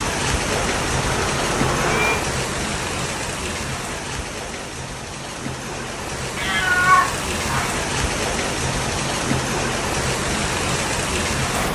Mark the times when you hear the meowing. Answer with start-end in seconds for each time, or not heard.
0.5-2.2, 6.3-7.8.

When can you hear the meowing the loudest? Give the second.
7 s.